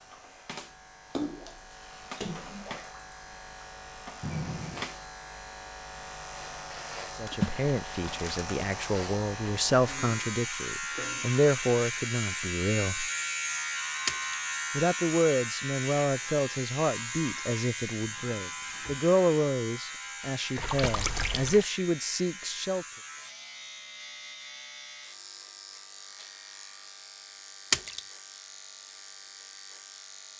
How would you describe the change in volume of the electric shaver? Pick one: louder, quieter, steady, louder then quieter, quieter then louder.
louder then quieter.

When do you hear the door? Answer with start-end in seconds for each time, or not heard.
4.2-4.8, 18.1-19.1.